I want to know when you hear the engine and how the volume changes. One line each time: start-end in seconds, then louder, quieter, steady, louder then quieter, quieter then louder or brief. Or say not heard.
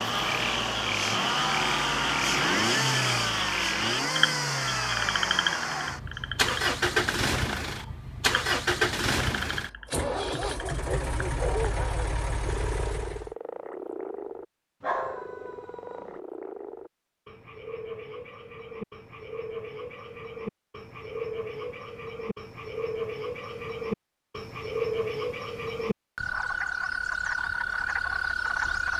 0.0-13.3 quieter.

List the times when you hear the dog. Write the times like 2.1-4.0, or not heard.
10.1-12.1, 14.8-16.2.